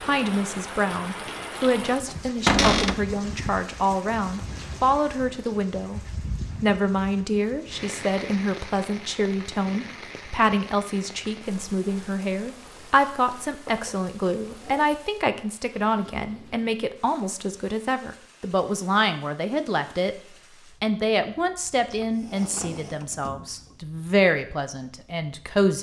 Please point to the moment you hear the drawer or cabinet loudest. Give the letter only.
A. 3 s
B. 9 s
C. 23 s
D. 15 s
A.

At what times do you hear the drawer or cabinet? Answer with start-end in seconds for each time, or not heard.
2.5-3.0, 13.7-14.8, 21.9-23.8.